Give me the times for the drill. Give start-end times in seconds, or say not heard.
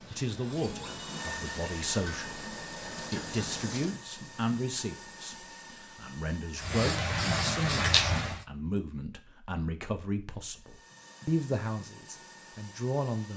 0.0-6.7, 10.6-13.3.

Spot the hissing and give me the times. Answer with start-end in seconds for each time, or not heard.
0.0-4.0, 6.5-8.4.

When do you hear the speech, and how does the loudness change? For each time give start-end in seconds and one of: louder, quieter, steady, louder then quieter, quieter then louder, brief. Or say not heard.
0.1-13.3 steady.